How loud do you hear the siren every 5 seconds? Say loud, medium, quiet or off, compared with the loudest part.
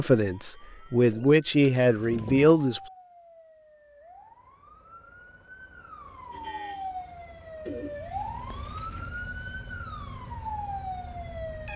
quiet, loud, loud.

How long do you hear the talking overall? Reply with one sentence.
The talking can be heard for 3 seconds in total.